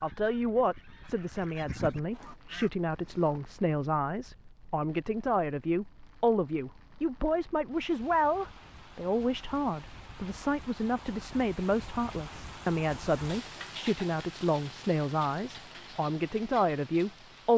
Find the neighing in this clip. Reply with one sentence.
The neighing can't be heard in this clip.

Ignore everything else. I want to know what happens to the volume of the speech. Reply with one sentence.
The volume of the speech stays about the same.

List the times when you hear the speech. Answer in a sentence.
You can hear the speech from 0.0 to 17.5 s.